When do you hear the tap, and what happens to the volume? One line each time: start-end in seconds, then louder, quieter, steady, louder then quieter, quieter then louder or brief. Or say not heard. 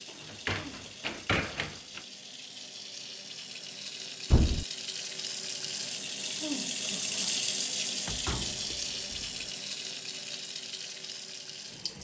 0.0-11.9 louder then quieter.